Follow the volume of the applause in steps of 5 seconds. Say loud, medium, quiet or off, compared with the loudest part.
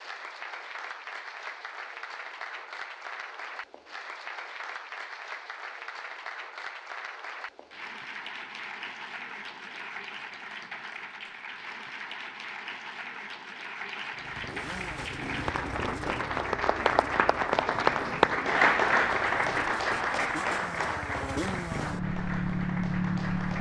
quiet, quiet, quiet, loud, medium.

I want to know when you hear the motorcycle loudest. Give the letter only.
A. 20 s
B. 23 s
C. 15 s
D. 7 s
B.